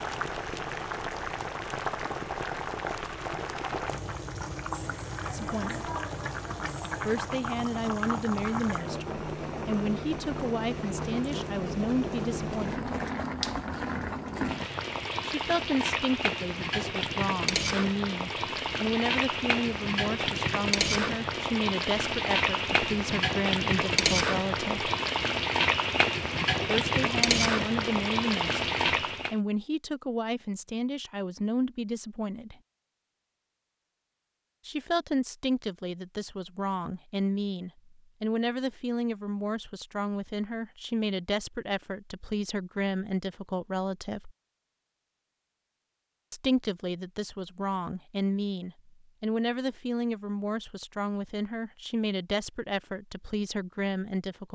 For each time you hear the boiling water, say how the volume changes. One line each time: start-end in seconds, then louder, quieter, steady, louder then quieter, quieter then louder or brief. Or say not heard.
0.0-29.4 louder.